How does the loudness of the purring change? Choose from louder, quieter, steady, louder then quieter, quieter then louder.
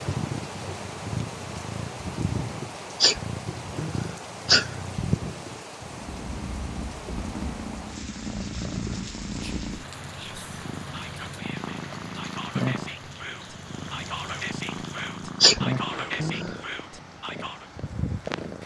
steady.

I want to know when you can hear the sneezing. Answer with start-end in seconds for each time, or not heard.
3.0-4.8, 15.4-16.6.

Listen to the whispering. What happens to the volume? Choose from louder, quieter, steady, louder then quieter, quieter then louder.
louder.